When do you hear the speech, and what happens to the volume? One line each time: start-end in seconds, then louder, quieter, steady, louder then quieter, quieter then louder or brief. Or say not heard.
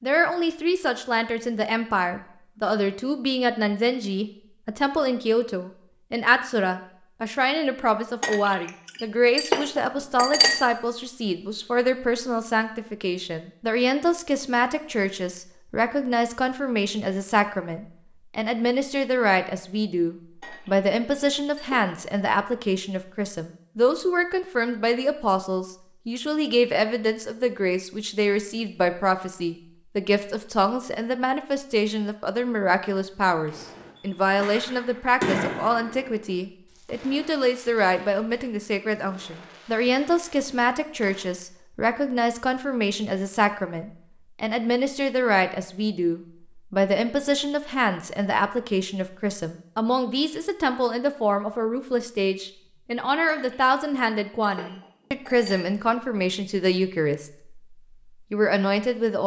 0.0-59.2 steady.